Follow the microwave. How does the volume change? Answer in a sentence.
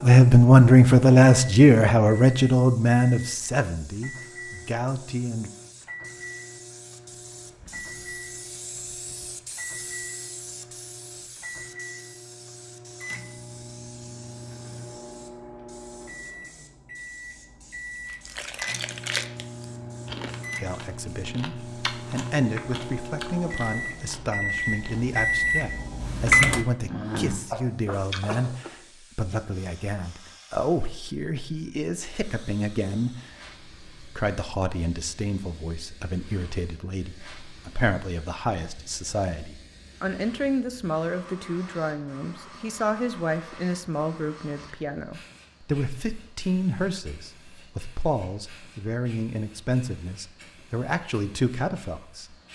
The volume of the microwave goes up.